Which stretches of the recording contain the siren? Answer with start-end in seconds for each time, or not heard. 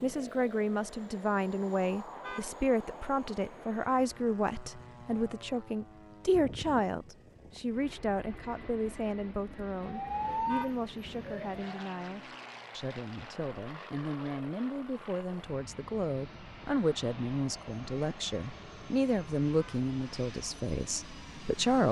9.8-11.7.